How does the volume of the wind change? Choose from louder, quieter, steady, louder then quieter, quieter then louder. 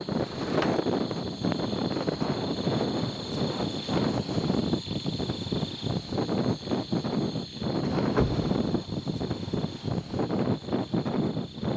steady.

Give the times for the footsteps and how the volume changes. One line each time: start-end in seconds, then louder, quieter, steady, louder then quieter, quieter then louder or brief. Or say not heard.
not heard.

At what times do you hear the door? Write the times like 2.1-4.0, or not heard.
0.1-0.8, 8.2-8.8.